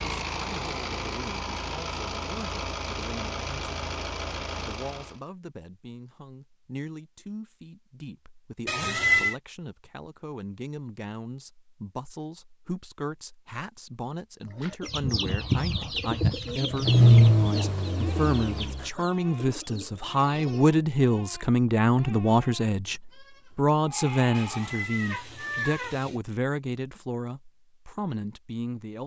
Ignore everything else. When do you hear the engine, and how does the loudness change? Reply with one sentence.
You can hear the engine from 0.0 to 5.2 s, at a steady volume; and briefly from 16.5 to 18.9 s.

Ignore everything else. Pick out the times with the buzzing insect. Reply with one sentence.
The buzzing insect can't be heard in this clip.